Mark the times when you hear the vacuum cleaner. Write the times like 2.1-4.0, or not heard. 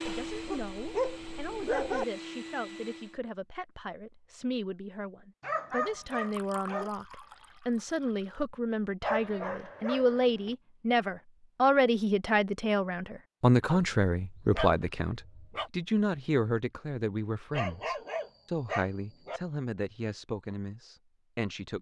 0.0-3.2.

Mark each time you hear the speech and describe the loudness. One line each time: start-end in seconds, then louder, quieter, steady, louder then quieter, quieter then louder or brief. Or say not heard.
0.0-21.7 louder then quieter.